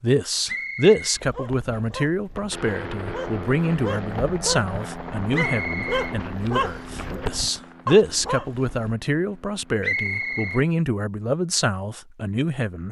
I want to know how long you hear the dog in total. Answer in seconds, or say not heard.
8 s.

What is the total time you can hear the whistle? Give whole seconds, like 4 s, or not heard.
3 s.